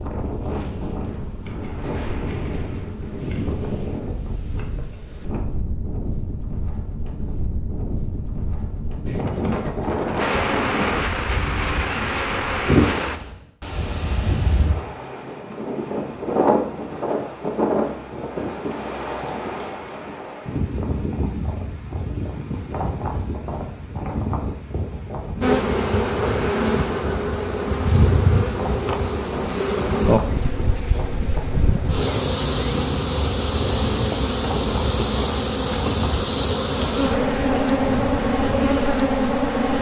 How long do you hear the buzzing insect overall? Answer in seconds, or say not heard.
17 s.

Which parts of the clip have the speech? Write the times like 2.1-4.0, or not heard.
not heard.